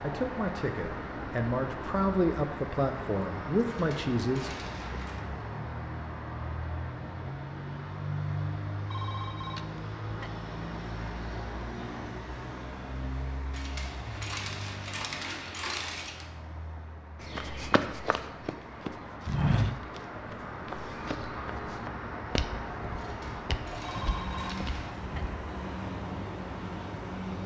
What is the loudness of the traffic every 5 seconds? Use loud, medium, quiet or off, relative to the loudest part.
loud, loud, loud, medium, loud, loud.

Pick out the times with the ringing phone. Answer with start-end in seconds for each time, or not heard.
8.9-10.3, 23.8-25.2.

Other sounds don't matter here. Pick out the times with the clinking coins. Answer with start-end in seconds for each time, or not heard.
3.6-5.2, 13.5-16.3, 22.9-24.9.